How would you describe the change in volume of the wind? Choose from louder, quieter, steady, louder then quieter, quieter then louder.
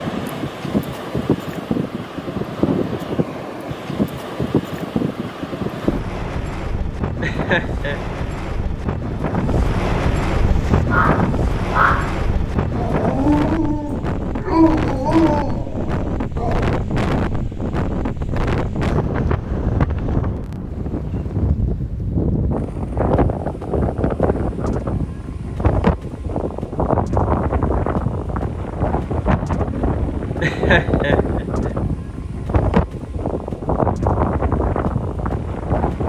steady.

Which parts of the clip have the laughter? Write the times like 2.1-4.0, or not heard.
7.2-8.0, 30.4-31.8.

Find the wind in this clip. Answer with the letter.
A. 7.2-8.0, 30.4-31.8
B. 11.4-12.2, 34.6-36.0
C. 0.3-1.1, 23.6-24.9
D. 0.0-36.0
D.